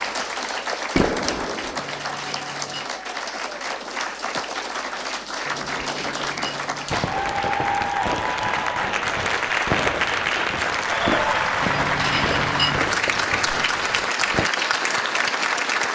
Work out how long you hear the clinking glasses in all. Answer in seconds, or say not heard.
4 s.